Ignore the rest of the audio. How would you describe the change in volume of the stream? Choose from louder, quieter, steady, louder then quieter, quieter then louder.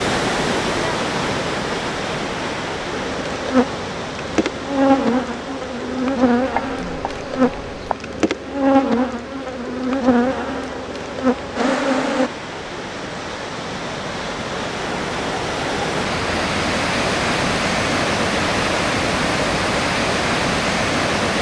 quieter then louder.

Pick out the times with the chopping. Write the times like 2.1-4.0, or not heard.
6.5-8.0.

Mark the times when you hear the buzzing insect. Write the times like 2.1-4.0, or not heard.
2.9-12.3.